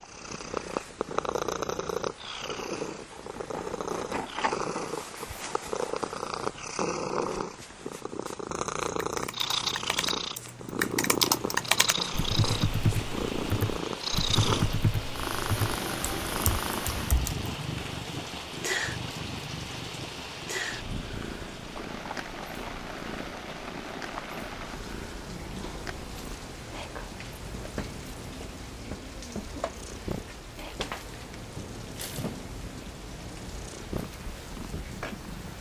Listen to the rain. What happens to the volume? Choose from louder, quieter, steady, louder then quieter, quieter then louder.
steady.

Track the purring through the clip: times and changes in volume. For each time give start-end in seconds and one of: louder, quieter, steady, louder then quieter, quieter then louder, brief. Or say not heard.
0.0-35.5 quieter.